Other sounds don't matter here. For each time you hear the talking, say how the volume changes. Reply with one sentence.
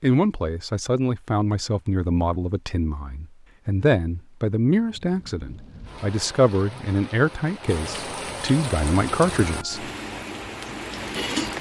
You can hear the talking from 0.0 to 9.9 s, at a steady volume.